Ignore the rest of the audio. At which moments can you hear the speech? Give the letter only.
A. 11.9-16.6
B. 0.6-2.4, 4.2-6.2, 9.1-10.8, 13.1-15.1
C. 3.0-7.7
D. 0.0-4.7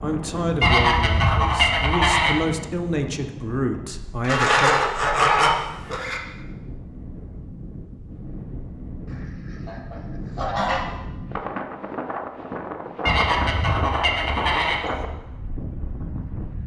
D.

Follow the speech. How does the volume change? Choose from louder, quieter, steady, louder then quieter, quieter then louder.
quieter then louder.